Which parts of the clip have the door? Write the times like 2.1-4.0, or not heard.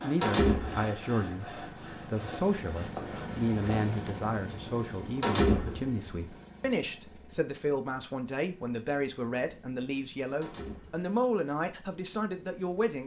0.2-0.8, 5.2-5.8, 10.4-11.1.